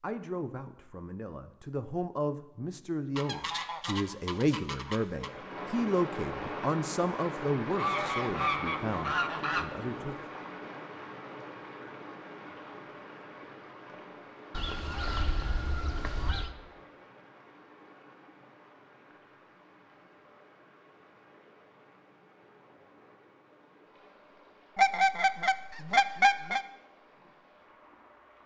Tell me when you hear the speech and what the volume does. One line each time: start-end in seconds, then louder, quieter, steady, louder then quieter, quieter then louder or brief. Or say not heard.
0.0-10.2 louder then quieter.